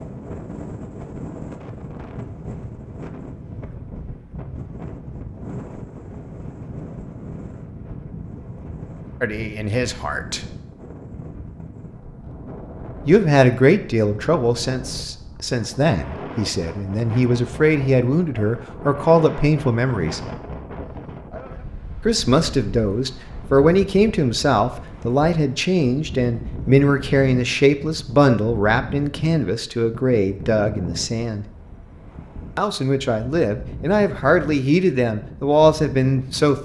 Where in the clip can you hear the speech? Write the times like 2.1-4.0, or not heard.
9.2-10.4, 13.1-20.2, 22.1-31.4, 32.5-36.6.